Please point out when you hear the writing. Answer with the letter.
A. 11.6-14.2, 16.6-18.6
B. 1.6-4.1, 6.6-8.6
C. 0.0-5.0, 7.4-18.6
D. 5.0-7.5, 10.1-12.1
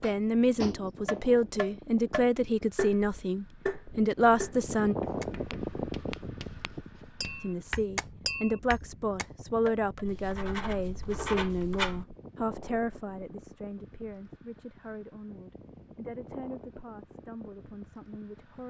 D.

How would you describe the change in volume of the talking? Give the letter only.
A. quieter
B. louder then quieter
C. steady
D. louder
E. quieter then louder
A.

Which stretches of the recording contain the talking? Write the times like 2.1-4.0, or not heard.
0.0-5.0, 7.4-18.6.